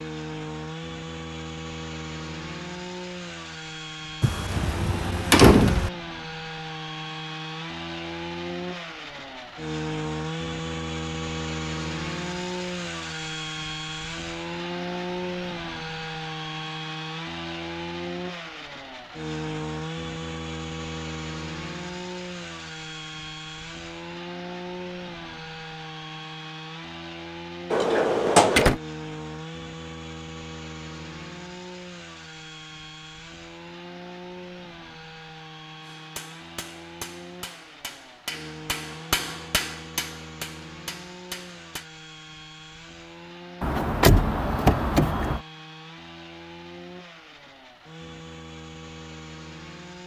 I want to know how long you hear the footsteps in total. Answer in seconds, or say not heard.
not heard.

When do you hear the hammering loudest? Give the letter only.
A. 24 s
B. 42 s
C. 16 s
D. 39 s
D.